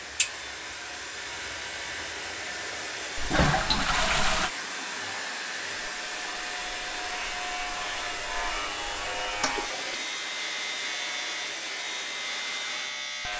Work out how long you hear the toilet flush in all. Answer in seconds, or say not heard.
2 s.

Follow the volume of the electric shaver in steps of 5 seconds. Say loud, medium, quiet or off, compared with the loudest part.
medium, loud, loud.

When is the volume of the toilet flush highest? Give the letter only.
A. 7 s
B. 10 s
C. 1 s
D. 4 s
D.